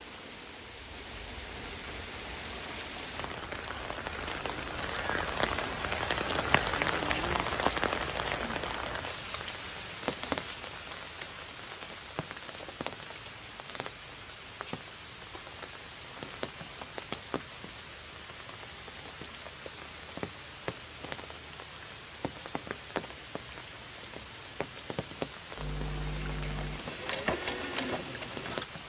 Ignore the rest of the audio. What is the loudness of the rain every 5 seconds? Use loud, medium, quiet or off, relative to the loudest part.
medium, loud, medium, medium, medium, medium.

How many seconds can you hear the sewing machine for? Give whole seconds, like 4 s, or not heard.
3 s.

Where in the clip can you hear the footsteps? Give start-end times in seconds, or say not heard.
not heard.